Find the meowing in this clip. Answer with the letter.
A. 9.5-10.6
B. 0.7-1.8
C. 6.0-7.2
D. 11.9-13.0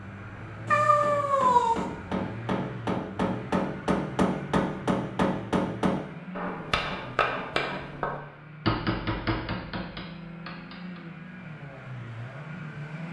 B.